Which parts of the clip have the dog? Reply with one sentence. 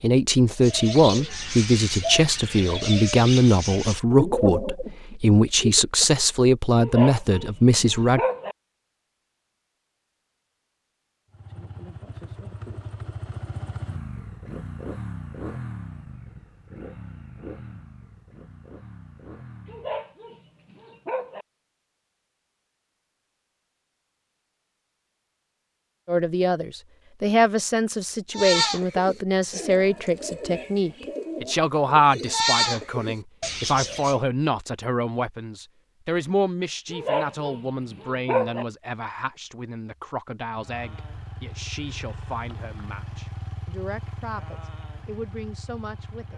You can hear the dog from 6.8 to 8.6 s, from 19.6 to 21.4 s and from 36.9 to 38.6 s.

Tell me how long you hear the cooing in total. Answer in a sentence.
You can hear the cooing for 11 seconds altogether.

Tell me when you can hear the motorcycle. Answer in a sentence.
You can hear the motorcycle from 11.3 to 20.1 s and from 40.5 to 46.3 s.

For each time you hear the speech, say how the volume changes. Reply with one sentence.
You can hear the speech from 0.0 to 8.2 s, at a steady volume; and from 26.1 to 46.3 s, getting quieter.